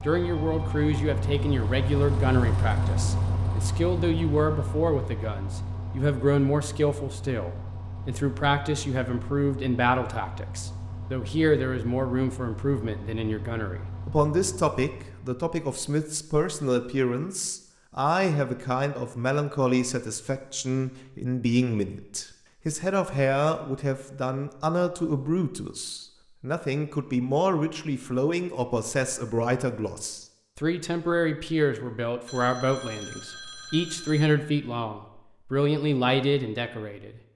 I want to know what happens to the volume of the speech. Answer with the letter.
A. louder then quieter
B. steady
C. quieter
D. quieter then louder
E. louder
B.